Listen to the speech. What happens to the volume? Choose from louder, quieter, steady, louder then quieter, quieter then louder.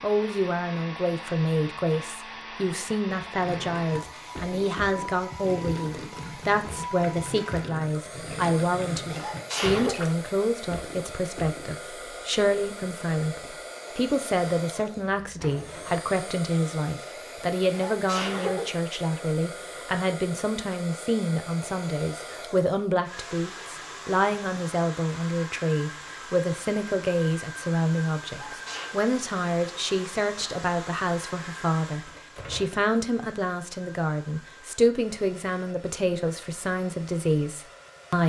steady.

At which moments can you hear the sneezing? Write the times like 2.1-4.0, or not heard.
9.1-10.1, 17.7-18.8, 28.4-28.9.